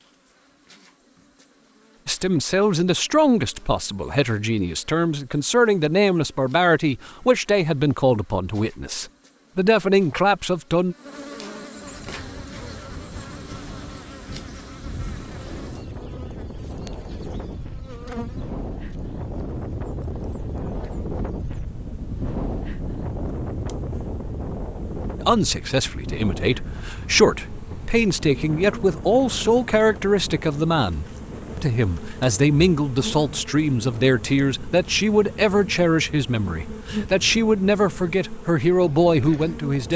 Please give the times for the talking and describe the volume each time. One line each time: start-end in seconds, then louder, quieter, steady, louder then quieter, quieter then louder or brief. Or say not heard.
2.0-10.9 steady
25.2-39.9 steady.